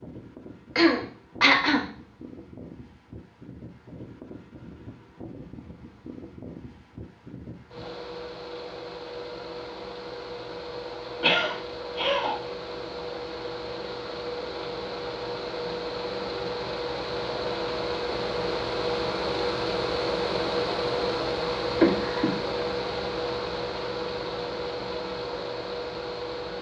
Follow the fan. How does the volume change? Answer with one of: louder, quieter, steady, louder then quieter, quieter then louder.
louder.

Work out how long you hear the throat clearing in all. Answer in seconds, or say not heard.
3 s.